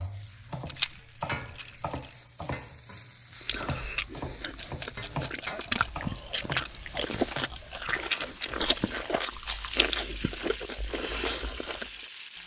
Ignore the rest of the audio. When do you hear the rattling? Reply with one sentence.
The rattling can be heard from 0.7 to 2.1 s, from 4.5 to 6.0 s and from 8.6 to 9.8 s.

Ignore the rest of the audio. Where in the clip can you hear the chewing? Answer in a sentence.
The chewing can be heard from 3.4 to 11.9 s.